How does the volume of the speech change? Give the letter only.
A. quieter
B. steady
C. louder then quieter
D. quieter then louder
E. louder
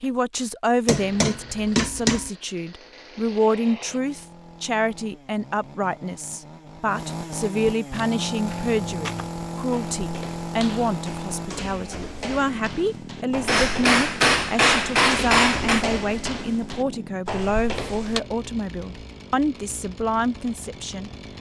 B.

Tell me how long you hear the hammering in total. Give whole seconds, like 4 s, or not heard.
4 s.